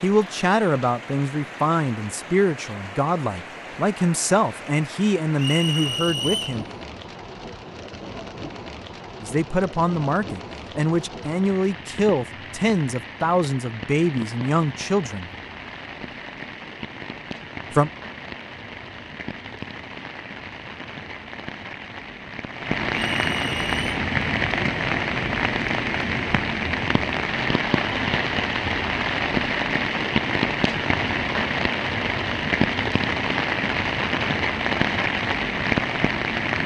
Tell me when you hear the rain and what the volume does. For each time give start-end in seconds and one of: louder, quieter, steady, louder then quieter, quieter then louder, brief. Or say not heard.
0.0-36.6 louder.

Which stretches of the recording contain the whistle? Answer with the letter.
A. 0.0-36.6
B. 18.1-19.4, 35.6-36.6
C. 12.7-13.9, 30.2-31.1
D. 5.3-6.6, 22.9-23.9
D.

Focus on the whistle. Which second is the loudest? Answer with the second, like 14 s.
6 s.